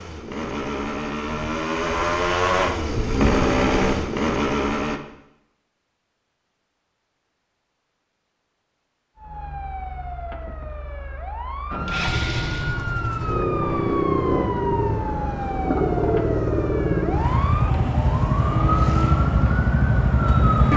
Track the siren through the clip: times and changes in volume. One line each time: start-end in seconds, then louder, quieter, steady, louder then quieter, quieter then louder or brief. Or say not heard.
9.2-20.7 louder.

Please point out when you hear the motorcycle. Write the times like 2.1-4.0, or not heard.
0.0-5.0, 11.8-20.7.